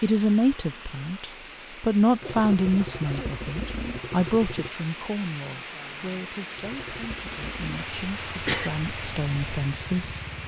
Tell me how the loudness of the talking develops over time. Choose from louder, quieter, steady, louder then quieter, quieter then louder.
quieter then louder.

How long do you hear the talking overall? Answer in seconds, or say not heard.
10 s.